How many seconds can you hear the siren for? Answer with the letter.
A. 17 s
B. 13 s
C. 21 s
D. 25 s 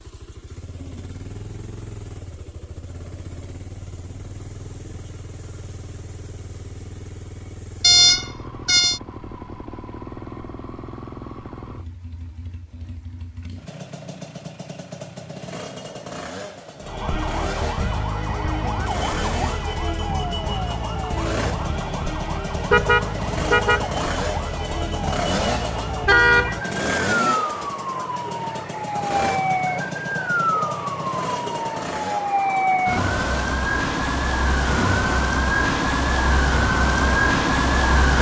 C.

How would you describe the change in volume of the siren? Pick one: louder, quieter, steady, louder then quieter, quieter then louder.
louder.